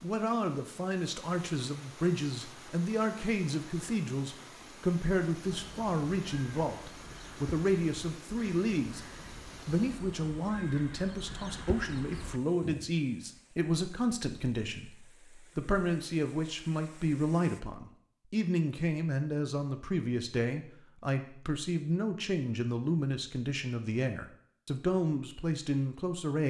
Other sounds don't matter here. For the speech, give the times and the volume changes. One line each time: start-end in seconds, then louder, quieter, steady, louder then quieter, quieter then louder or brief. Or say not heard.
0.0-26.4 steady.